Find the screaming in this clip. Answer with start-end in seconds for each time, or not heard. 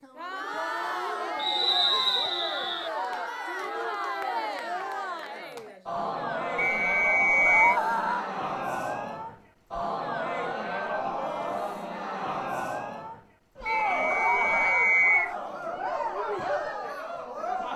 2.9-3.6, 7.5-8.3, 14.1-15.2.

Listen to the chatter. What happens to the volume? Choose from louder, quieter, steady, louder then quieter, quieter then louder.
steady.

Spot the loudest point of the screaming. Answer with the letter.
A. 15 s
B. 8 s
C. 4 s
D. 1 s
B.